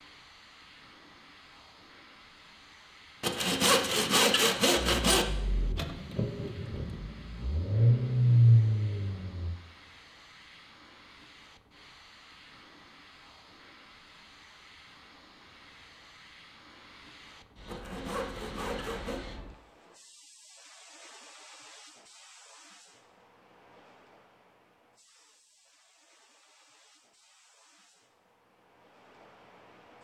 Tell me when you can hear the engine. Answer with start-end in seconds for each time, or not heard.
4.8-9.6.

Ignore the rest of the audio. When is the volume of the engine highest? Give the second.
8 s.